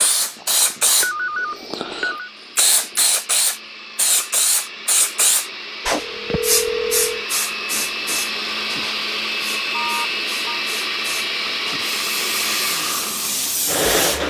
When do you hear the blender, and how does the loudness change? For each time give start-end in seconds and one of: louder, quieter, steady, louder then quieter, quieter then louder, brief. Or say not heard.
0.0-14.2 louder.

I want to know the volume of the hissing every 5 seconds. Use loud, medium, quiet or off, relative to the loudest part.
loud, loud, medium.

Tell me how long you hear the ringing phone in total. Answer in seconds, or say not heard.
4 s.